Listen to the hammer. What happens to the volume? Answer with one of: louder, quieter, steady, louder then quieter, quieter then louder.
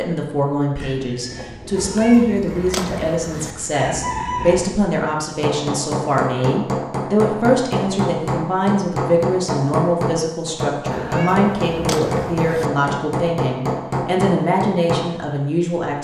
steady.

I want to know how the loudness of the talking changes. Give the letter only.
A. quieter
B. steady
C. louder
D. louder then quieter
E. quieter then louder
B.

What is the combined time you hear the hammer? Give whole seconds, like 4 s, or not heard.
10 s.